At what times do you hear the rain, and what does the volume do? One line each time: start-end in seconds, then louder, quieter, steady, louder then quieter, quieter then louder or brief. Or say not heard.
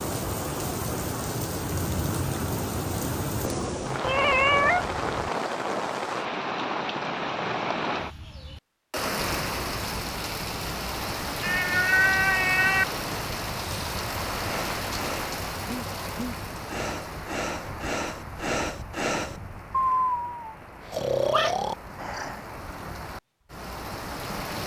0.0-24.6 quieter.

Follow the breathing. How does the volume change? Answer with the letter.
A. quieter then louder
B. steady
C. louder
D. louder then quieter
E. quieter
C.